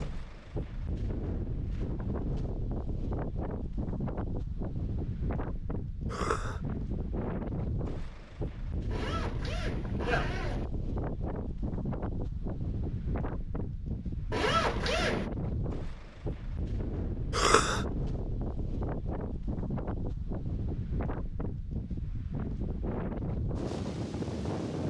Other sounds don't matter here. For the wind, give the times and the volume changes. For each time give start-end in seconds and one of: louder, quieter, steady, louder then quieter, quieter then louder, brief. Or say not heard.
0.0-24.8 steady.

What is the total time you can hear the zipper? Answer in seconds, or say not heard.
3 s.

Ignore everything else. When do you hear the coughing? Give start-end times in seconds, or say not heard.
6.0-6.6, 17.3-17.9.